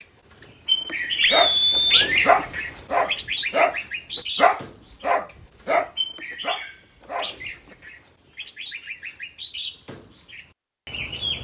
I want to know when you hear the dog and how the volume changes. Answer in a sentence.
The dog can be heard from 1.3 to 7.3 s, getting quieter.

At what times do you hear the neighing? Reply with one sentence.
The neighing can be heard from 1.2 to 2.2 s.